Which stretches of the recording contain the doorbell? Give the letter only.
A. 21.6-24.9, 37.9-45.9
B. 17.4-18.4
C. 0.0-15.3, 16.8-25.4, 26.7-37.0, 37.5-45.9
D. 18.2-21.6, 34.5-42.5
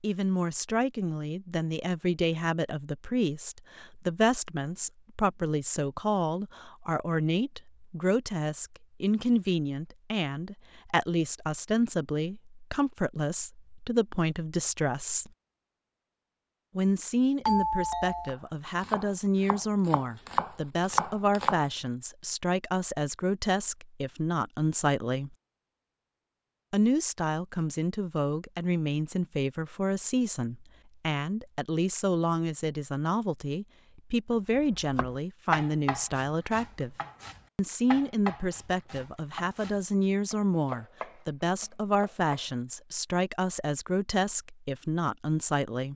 B.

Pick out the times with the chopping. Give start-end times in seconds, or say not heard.
18.2-21.6, 34.5-42.5.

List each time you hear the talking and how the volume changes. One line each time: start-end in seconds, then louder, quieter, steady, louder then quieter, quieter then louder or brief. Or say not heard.
0.0-15.3 steady
16.8-25.4 steady
26.7-37.0 steady
37.5-45.9 steady.